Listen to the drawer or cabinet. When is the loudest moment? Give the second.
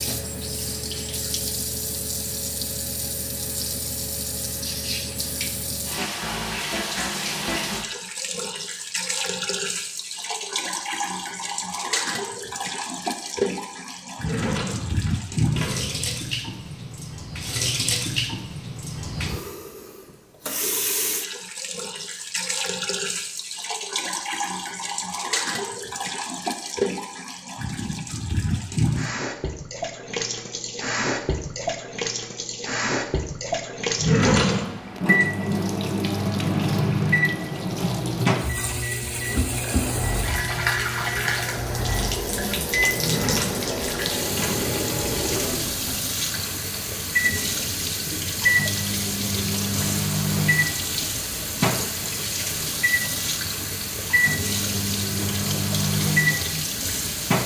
34 s.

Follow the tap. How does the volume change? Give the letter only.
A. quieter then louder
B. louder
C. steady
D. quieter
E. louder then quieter
C.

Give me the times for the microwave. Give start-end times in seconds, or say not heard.
34.9-57.4.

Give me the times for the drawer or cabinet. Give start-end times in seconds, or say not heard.
14.2-16.1, 34.0-34.7, 43.0-44.8.